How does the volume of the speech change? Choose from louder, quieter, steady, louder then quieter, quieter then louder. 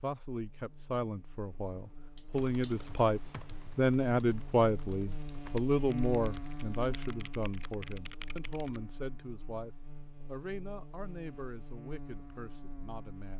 louder then quieter.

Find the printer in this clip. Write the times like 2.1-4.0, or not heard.
not heard.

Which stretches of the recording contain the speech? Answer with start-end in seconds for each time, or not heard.
0.0-13.3.